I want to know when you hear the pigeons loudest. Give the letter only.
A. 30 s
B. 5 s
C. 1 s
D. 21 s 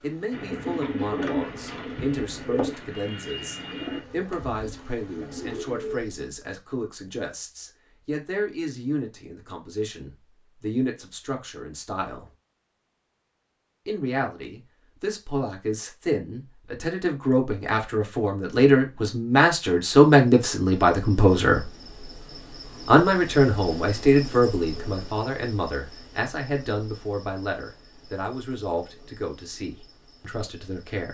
C.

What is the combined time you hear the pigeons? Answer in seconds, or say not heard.
6 s.